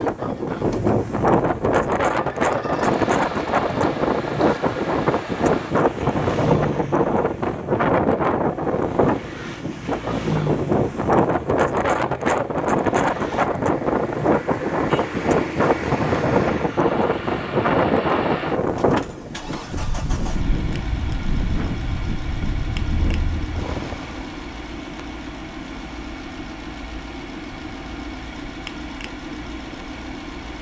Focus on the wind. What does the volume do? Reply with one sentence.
The volume of the wind goes down.